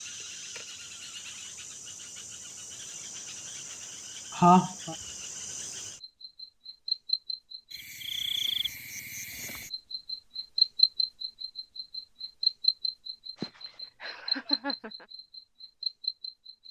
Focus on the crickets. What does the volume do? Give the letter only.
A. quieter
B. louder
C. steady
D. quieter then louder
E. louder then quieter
E.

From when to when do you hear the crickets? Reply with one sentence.
The crickets can be heard from 0.0 to 16.6 s.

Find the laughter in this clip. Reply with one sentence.
The laughter can be heard from 4.3 to 5.0 s and from 13.3 to 15.1 s.